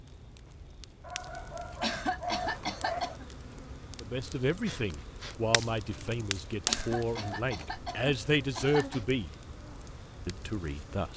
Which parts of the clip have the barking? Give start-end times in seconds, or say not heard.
1.0-3.0.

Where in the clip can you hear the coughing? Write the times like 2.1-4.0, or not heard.
1.8-3.2, 6.7-9.0.